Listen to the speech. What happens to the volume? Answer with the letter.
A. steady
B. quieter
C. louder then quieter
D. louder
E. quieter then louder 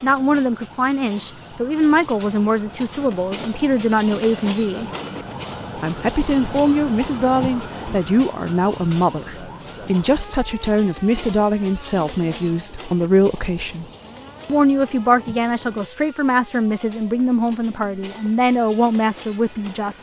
A.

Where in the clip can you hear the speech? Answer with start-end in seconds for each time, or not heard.
0.0-4.9, 5.8-13.8, 14.4-19.9.